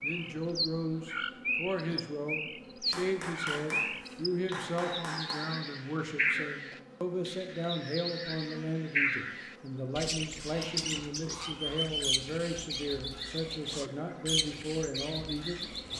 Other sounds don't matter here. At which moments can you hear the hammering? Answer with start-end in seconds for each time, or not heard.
2.9-5.5.